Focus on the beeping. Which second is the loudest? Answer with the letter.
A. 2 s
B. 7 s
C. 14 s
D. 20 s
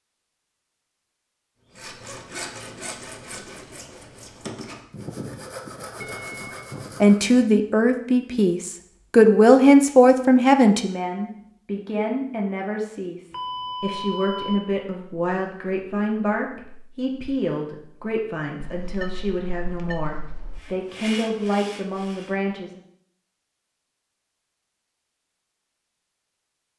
C.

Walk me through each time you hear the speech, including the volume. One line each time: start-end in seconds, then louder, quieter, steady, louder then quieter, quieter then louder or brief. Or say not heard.
7.0-22.8 quieter.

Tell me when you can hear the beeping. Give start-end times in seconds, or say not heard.
6.0-6.5, 13.3-14.7, 18.6-20.6.